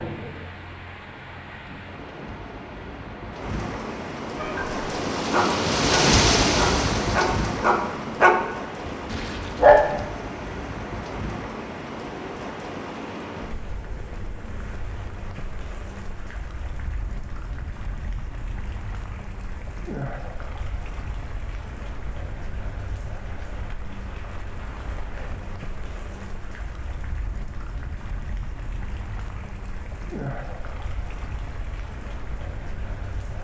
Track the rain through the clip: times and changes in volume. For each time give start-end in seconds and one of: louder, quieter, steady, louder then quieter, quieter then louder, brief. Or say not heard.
0.0-33.4 quieter.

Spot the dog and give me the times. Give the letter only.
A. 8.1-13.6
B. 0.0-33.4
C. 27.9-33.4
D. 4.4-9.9
D.